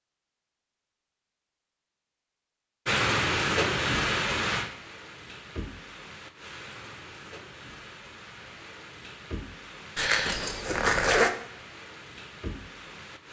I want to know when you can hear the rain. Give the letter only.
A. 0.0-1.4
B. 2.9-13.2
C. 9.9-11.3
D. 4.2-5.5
B.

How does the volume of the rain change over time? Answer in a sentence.
The volume of the rain goes down.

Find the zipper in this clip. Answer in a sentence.
The zipper can be heard from 9.9 to 11.3 s.